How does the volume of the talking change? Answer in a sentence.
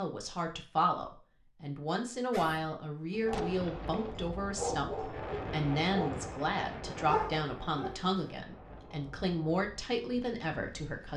The loudness of the talking stays about the same.